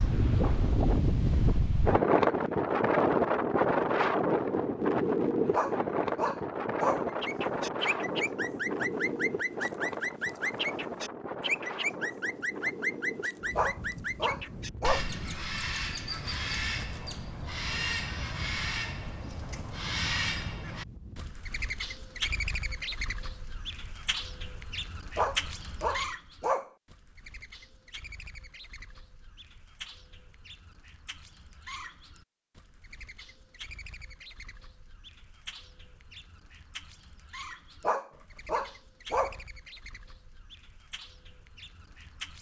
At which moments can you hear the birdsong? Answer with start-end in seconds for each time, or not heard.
7.0-42.3.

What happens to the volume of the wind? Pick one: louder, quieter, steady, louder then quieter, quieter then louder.
quieter.